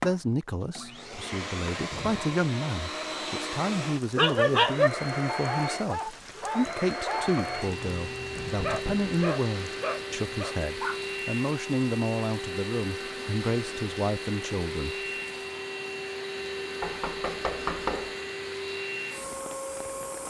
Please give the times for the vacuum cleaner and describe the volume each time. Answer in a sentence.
You can hear the vacuum cleaner from 0.0 to 20.2 s, at a steady volume.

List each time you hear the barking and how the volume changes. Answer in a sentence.
You can hear the barking from 4.2 to 11.2 s, getting quieter.